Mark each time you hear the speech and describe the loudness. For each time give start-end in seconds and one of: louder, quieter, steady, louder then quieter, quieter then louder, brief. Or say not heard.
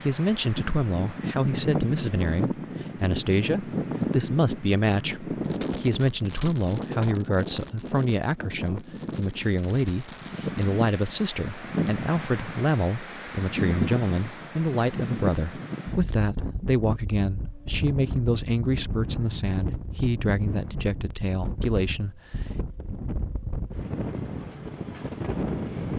0.0-22.6 steady.